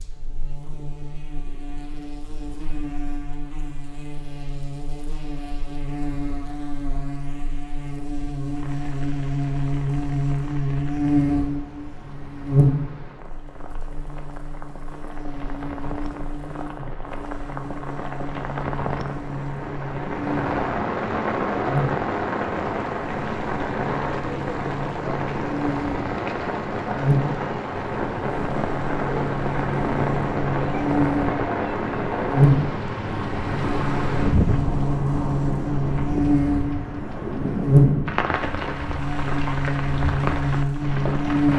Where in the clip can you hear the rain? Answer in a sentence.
You can hear the rain from 8.6 to 41.5 s.